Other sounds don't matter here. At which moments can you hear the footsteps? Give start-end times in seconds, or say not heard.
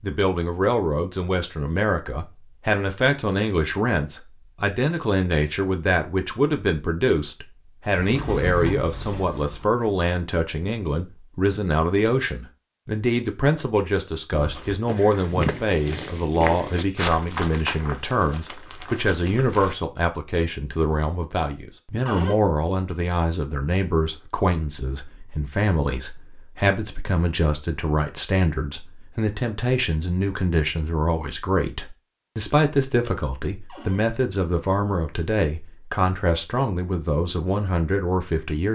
14.3-19.8.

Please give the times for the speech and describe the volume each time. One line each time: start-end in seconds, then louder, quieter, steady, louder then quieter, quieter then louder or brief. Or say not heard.
0.0-38.7 steady.